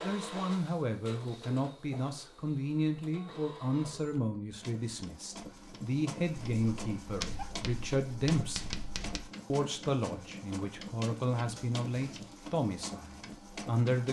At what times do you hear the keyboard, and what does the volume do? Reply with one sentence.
You can't hear the keyboard here.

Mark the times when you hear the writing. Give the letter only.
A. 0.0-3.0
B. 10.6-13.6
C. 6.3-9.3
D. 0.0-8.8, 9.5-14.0
C.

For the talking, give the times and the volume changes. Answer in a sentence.
You can hear the talking from 0.0 to 8.8 s, at a steady volume; and from 9.5 to 14.0 s, getting quieter.